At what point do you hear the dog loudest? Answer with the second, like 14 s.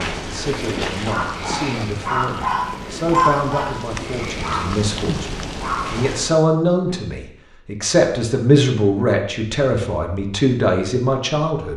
3 s.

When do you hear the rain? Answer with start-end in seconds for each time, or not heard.
0.0-6.4.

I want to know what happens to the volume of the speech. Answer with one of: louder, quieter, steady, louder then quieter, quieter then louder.
louder.